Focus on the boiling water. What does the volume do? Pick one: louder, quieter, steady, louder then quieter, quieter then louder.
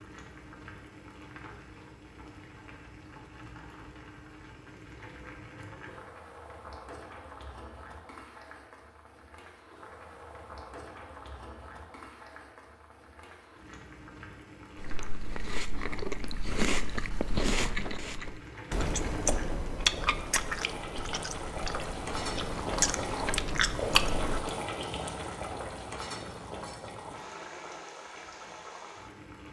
louder.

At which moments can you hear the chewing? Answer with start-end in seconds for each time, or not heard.
14.8-24.4.